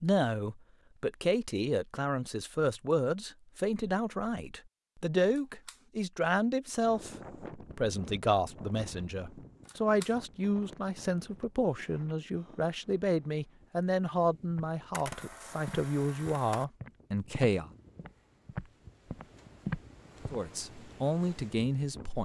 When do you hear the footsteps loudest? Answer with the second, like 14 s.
20 s.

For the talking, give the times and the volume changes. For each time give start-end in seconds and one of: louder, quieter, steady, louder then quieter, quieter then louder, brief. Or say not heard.
0.0-17.7 steady
20.3-22.2 brief.